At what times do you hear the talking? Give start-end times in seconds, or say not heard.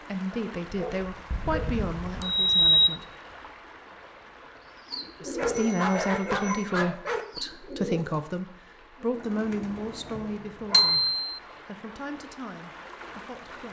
0.1-3.0, 5.2-13.6.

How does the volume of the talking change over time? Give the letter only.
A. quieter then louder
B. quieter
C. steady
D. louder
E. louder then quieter
B.